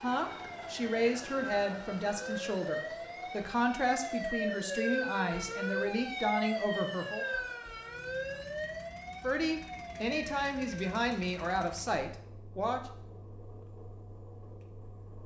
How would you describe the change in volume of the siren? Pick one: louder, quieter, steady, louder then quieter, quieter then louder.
louder then quieter.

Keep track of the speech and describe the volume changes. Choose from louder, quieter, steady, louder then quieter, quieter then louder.
steady.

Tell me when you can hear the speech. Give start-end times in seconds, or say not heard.
0.0-7.2, 9.2-12.8.